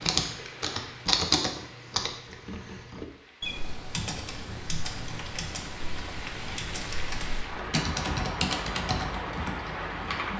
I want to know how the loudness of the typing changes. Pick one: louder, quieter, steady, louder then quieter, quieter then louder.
quieter then louder.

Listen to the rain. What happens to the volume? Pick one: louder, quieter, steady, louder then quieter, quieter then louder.
quieter then louder.